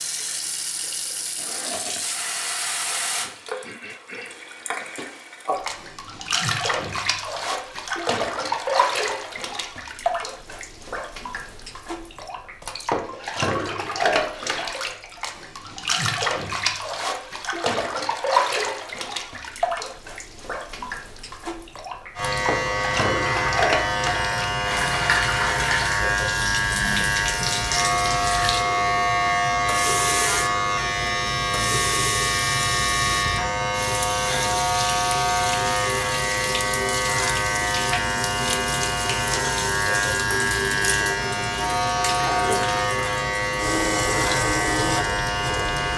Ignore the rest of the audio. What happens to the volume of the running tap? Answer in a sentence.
The loudness of the running tap stays about the same.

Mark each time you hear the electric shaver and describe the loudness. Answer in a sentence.
The electric shaver can be heard from 22.1 to 45.9 s, at a steady volume.